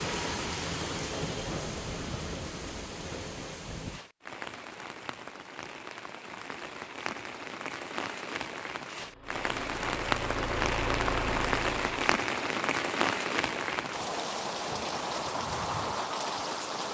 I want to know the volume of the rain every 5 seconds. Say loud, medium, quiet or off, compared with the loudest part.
medium, medium, loud, loud.